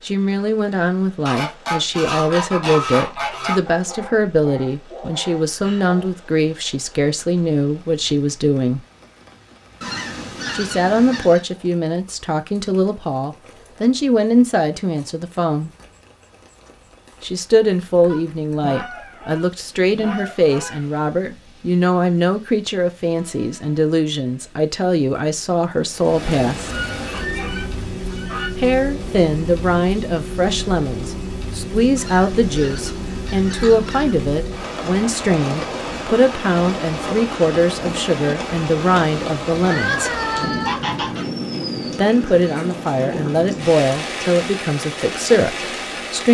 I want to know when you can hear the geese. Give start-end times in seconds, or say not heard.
1.2-3.6, 9.8-11.4, 18.1-20.9, 26.7-28.5, 31.9-34.1, 39.6-41.3.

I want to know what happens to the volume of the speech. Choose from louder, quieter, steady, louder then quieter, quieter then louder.
steady.